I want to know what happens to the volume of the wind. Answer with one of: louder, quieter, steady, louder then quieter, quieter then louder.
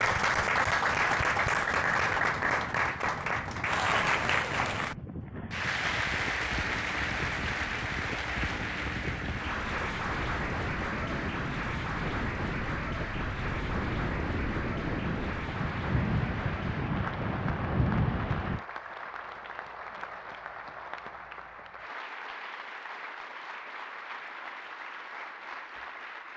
louder.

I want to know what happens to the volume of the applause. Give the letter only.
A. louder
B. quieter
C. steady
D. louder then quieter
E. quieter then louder
B.